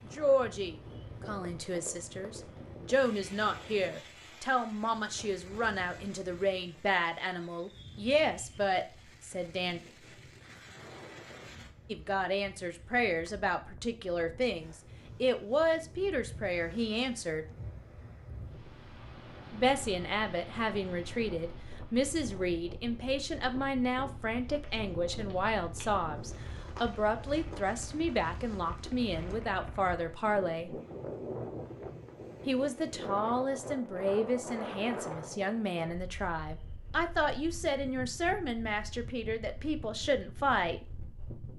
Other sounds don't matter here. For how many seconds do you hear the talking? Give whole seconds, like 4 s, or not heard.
35 s.